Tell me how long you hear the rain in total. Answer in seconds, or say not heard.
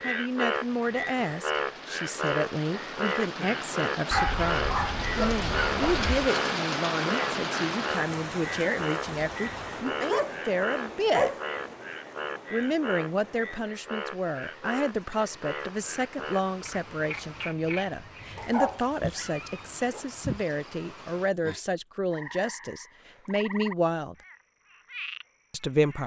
21 s.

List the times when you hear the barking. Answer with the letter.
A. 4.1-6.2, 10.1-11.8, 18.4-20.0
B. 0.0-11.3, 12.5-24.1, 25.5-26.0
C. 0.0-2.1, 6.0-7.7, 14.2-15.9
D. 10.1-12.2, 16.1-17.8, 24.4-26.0
A.